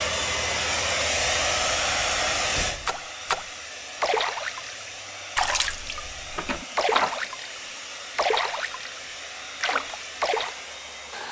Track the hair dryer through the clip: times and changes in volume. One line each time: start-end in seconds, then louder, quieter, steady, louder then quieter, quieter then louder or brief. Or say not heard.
0.0-11.2 quieter.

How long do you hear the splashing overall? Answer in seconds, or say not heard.
8 s.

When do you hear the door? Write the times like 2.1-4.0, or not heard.
1.1-2.9, 6.3-7.2.